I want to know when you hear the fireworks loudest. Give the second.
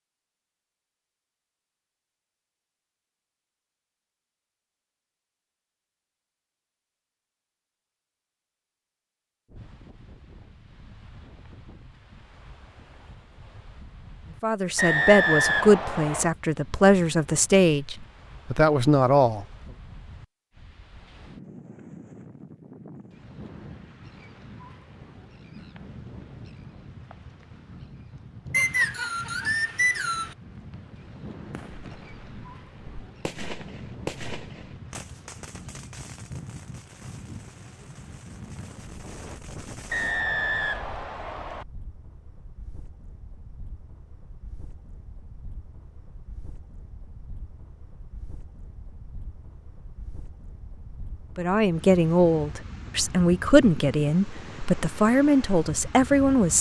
34 s.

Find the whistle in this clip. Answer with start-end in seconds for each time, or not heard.
14.8-16.3, 28.5-30.4, 39.9-41.6.